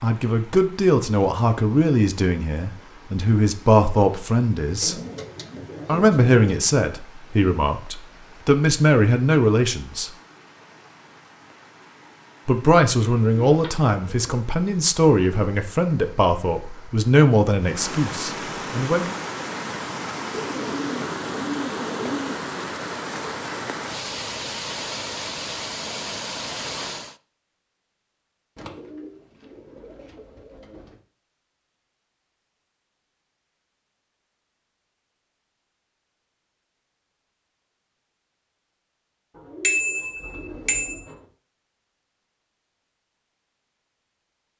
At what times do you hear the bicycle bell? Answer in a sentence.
You can hear the bicycle bell from 39.6 to 41.0 s.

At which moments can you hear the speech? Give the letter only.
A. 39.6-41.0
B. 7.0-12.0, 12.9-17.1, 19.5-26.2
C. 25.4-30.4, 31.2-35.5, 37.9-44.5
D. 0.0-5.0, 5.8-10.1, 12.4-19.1
D.